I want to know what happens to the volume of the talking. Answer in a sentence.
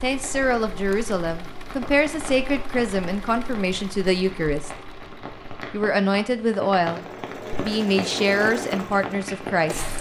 The loudness of the talking stays about the same.